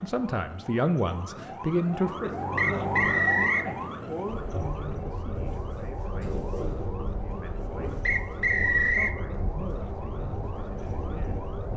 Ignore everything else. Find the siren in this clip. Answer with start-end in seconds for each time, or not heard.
0.0-11.7.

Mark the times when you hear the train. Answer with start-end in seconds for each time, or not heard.
4.2-11.7.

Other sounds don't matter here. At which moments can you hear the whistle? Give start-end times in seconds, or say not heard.
2.5-3.7, 8.1-9.2.